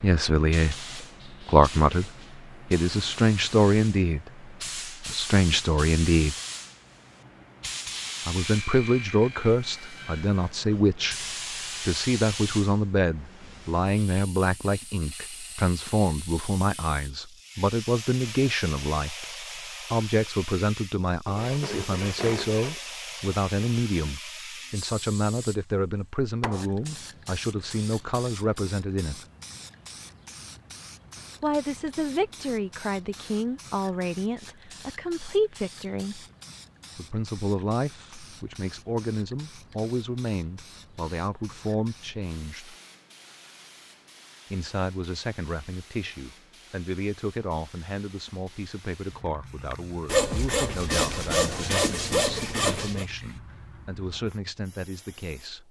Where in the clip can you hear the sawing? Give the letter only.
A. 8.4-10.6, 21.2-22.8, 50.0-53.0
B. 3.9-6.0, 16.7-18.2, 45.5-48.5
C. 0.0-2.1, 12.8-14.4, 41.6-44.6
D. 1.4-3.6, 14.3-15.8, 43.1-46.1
A.